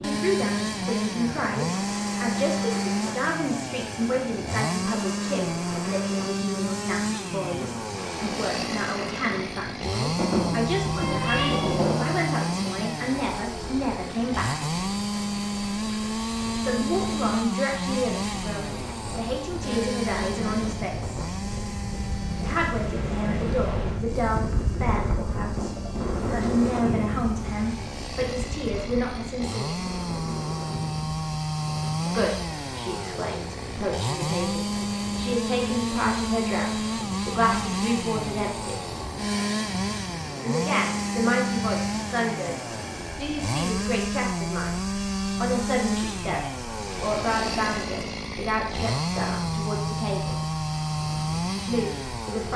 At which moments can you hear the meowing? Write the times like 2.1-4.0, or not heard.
10.2-12.1.